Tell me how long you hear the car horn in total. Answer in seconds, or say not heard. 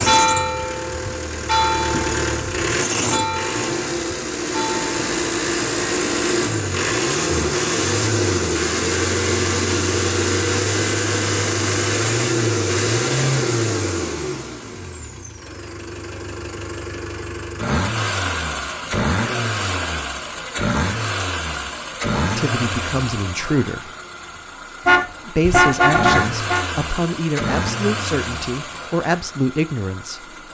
2 s.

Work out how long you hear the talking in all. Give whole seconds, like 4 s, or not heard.
7 s.